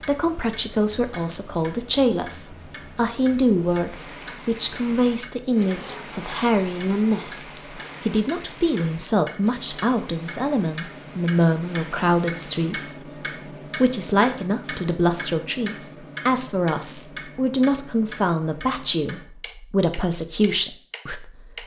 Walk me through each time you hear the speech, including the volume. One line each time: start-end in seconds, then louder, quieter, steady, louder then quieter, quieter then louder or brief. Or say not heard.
0.0-21.6 steady.